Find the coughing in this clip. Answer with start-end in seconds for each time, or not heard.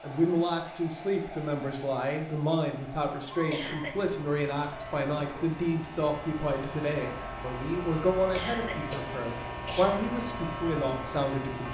3.5-4.1, 8.3-10.1.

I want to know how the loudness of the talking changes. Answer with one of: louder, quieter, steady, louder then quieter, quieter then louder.
steady.